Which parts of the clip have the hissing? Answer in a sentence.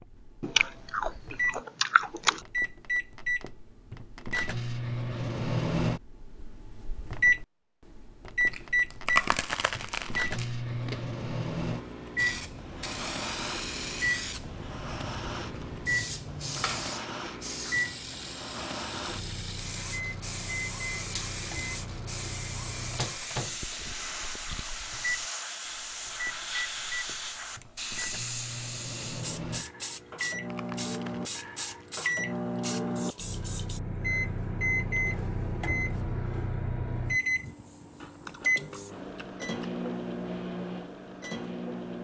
The hissing can be heard from 12.2 to 33.8 s.